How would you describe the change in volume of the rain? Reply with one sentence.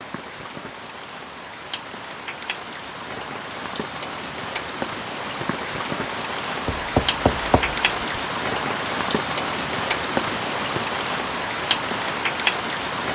The volume of the rain goes up.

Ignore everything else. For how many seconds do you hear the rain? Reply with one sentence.
The rain can be heard for 13 seconds in total.